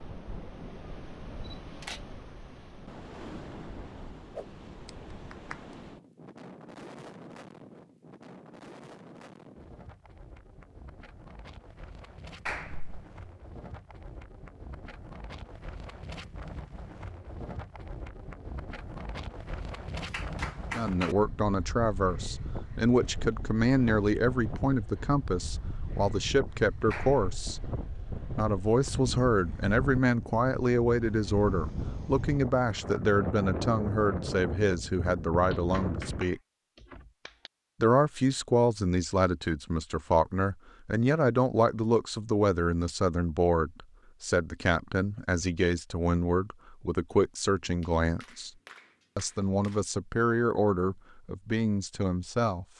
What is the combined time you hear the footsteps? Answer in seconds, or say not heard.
not heard.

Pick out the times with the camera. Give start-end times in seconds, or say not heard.
1.4-2.0.